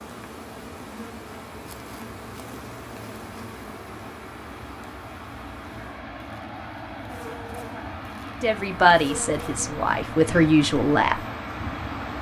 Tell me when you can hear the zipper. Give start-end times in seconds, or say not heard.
not heard.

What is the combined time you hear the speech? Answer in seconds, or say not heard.
3 s.